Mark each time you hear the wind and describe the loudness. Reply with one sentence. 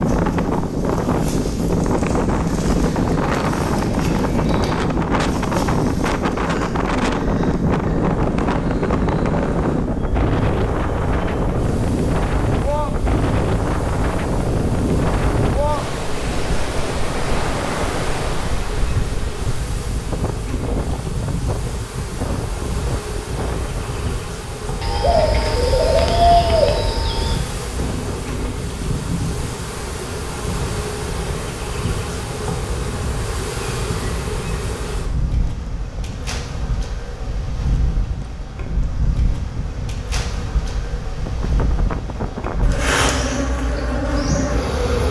You can hear the wind from 0.0 to 45.0 s, getting quieter.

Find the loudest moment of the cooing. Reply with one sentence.
The loudest moment of the cooing is at 26 seconds.